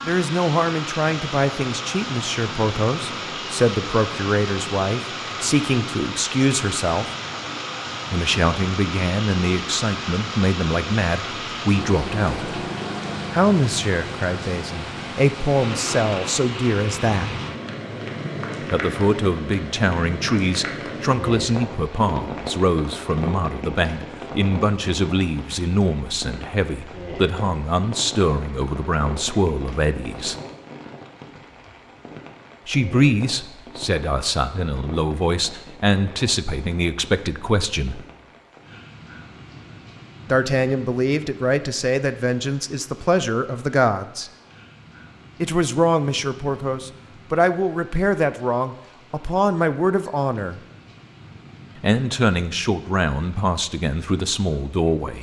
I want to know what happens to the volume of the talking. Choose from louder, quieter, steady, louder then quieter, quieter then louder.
steady.